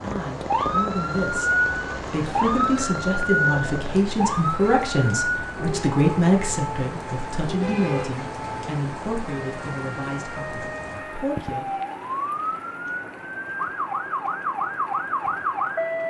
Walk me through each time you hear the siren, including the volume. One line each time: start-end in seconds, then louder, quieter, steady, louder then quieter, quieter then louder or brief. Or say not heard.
0.2-16.0 quieter then louder.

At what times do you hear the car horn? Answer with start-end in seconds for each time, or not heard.
7.6-8.2.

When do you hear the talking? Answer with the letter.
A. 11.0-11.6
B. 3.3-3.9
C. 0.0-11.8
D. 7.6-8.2
C.